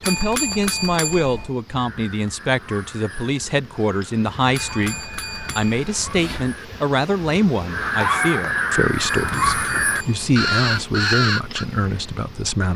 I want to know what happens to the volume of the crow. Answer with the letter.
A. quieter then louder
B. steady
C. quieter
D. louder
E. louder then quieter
D.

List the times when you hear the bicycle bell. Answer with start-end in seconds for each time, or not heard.
0.0-1.6, 4.5-6.5, 9.0-10.8.